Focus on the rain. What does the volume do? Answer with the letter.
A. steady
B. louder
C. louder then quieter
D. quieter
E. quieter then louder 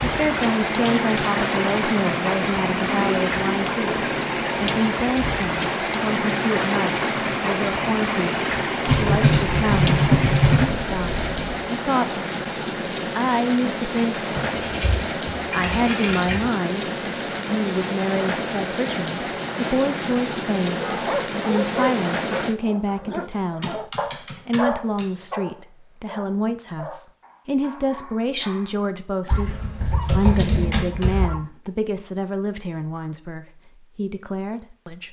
A.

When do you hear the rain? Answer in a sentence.
You can hear the rain from 0.0 to 22.6 s.